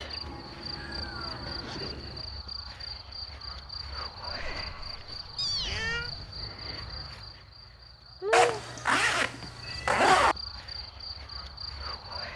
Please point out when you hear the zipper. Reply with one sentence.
The zipper can be heard from 0.9 to 2.2 s, from 4.3 to 6.3 s and from 8.3 to 10.3 s.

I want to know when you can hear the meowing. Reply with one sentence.
The meowing can be heard from 0.2 to 2.2 s, from 5.3 to 6.1 s and from 8.3 to 10.2 s.